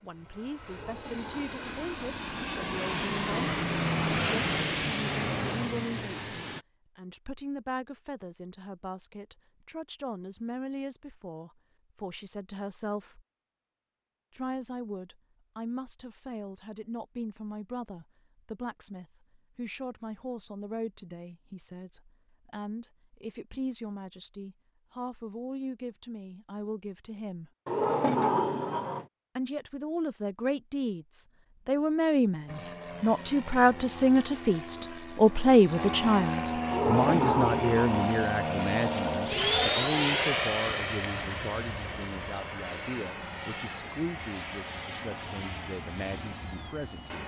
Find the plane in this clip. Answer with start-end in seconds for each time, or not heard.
0.1-6.7, 32.5-47.2.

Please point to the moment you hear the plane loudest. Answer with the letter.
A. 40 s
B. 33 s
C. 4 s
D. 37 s
A.